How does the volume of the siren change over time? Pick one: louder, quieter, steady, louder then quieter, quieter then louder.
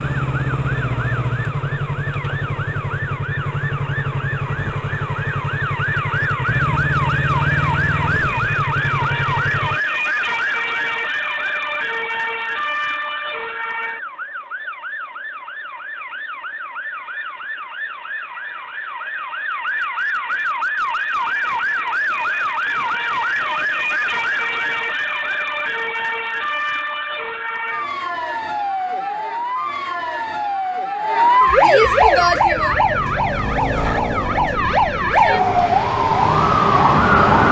louder.